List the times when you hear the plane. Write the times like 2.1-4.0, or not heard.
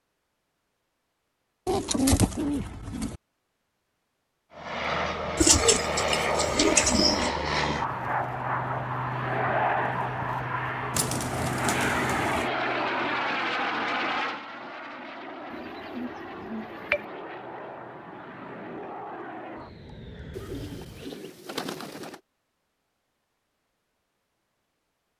4.5-21.2.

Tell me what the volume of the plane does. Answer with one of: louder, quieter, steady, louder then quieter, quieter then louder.
quieter.